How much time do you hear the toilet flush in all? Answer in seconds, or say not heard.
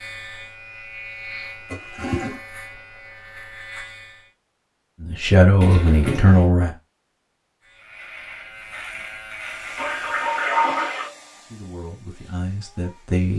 3 s.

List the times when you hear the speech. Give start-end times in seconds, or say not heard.
5.0-6.8, 11.4-13.3.